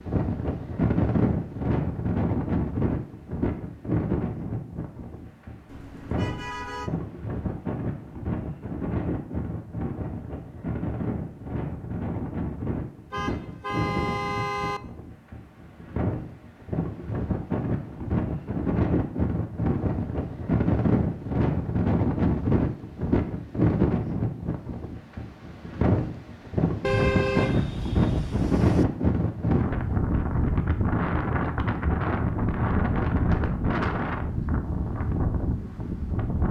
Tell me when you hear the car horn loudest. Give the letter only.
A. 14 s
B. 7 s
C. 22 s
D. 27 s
D.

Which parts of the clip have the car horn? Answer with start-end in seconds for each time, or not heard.
5.7-6.9, 13.1-14.8, 26.8-28.9.